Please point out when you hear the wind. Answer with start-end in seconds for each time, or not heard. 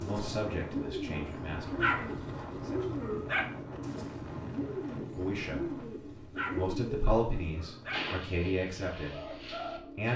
0.0-5.9.